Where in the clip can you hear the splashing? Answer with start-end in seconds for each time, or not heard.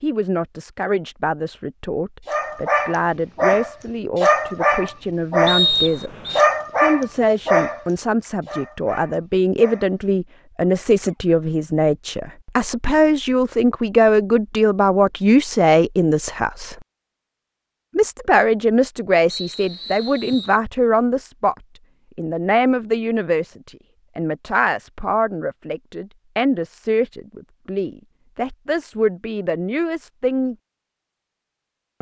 not heard.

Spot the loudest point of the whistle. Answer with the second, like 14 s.
6 s.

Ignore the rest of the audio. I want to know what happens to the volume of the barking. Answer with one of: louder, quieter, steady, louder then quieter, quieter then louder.
quieter.